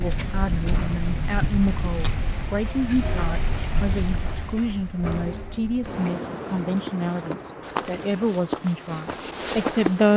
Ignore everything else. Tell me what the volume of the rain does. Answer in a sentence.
The volume of the rain goes down.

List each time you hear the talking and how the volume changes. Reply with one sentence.
The talking can be heard from 0.0 to 10.1 s, at a steady volume.